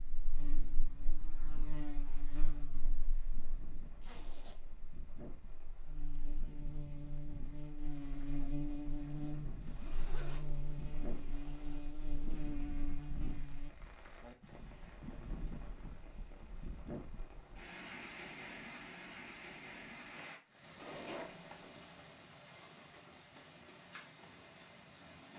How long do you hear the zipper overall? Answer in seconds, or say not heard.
2 s.